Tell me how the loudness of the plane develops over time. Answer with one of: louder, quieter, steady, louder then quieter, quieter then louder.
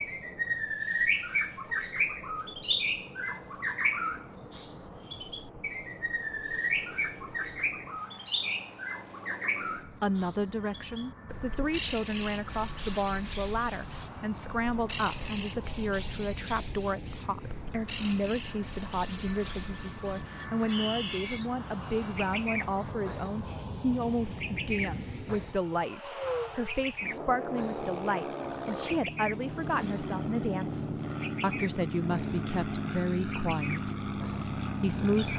louder.